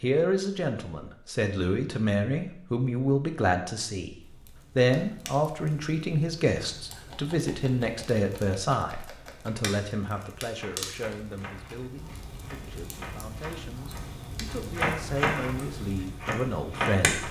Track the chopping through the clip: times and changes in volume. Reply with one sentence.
The chopping can be heard from 6.7 to 17.2 s, getting louder.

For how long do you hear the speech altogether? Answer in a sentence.
You can hear the speech for 17 seconds altogether.